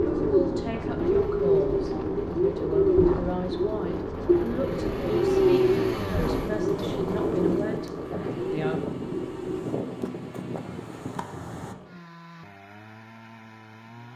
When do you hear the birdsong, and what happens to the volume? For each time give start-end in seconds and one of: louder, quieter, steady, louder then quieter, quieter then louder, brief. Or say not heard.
0.0-9.7 quieter.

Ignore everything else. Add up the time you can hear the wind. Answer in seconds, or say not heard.
12 s.